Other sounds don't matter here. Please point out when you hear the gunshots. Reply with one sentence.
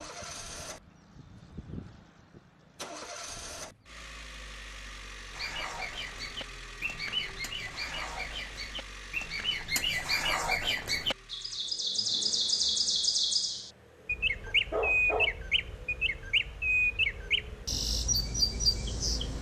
You can't hear the gunshots here.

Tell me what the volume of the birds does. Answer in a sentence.
The volume of the birds goes up.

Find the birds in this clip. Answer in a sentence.
You can hear the birds from 5.3 to 19.3 s.